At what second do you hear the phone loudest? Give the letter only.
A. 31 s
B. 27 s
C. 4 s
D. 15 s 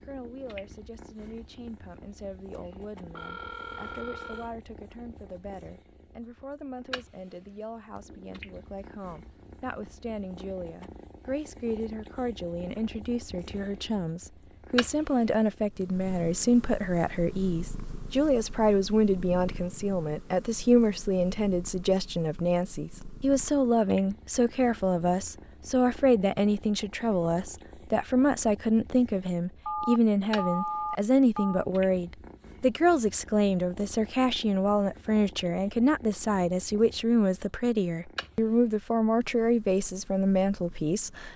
A.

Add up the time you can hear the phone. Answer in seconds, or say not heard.
4 s.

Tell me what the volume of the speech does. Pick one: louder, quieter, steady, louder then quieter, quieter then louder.
louder.